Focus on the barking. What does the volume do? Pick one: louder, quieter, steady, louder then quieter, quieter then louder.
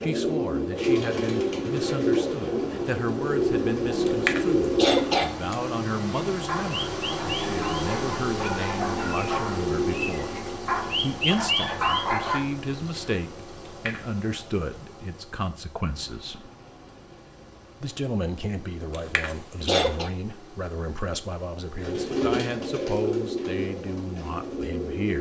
louder.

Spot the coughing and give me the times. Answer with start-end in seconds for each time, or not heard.
4.0-5.7, 13.7-14.1, 18.9-20.1.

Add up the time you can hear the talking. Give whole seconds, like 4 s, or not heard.
23 s.